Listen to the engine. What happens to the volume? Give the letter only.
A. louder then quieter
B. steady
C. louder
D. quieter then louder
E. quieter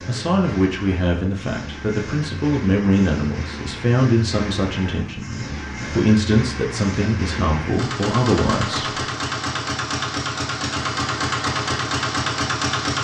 C.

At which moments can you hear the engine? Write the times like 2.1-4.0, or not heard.
0.0-12.9.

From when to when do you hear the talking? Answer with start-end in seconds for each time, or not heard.
0.1-9.0.